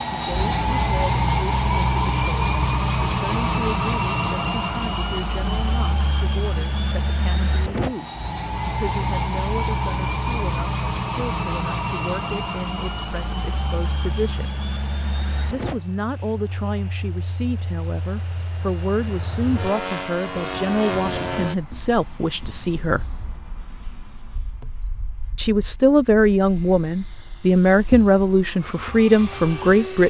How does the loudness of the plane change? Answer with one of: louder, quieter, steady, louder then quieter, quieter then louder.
quieter.